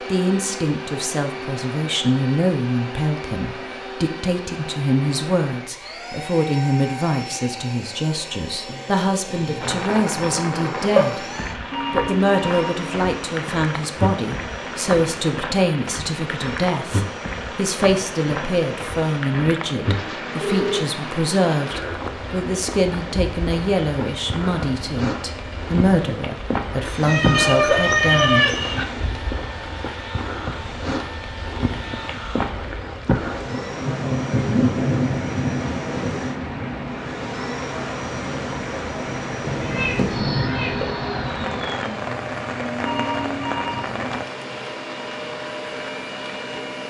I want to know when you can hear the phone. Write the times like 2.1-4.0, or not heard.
11.7-13.3, 20.4-20.9, 42.8-43.9.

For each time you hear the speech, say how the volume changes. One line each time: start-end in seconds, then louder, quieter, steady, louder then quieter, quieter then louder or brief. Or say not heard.
0.1-11.2 steady
11.9-28.4 steady.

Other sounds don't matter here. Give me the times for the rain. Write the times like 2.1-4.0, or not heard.
9.6-46.6.